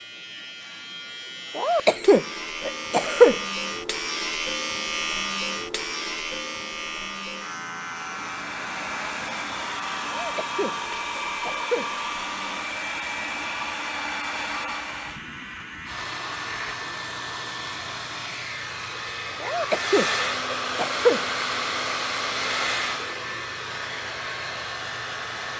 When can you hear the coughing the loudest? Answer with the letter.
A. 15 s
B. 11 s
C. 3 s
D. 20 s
C.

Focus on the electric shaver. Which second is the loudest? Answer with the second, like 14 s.
5 s.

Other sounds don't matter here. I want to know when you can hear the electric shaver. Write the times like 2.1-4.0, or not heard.
0.0-16.8.